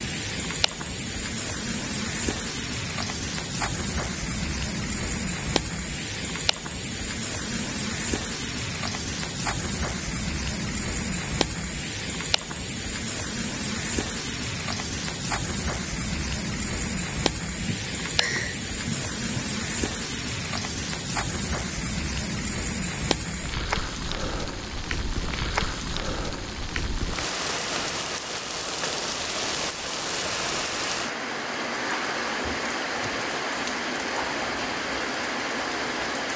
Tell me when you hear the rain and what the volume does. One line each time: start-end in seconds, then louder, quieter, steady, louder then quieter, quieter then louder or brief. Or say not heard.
0.0-36.3 steady.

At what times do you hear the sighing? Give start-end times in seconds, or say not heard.
17.6-19.2.